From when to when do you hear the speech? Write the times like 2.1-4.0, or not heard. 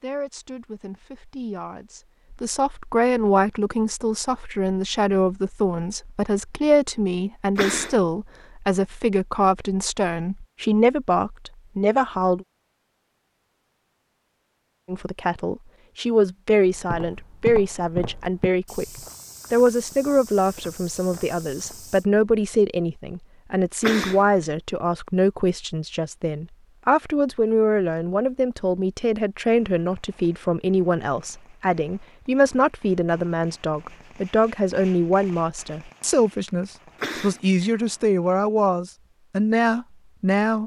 0.0-12.4, 14.8-18.9, 19.5-40.6.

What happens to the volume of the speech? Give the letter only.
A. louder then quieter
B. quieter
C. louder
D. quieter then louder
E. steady
E.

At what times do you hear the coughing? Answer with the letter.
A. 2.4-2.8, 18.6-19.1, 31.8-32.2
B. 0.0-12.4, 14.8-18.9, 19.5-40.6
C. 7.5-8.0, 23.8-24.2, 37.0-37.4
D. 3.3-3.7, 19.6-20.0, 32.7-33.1
C.